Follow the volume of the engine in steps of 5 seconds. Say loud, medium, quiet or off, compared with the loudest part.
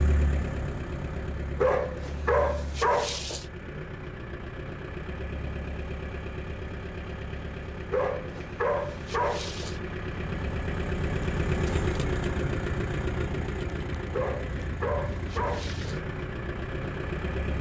medium, medium, loud, loud.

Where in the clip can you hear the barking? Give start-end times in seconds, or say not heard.
1.6-3.5, 7.9-9.8, 14.1-16.0.